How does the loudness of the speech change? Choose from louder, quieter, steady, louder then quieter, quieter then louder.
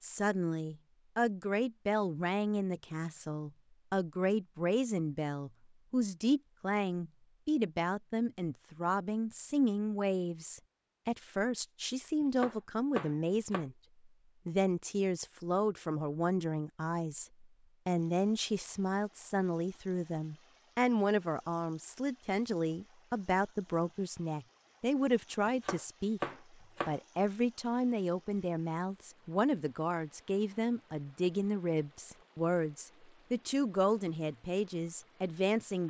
steady.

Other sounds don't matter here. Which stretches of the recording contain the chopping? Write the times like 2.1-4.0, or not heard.
12.2-13.7, 25.4-27.0.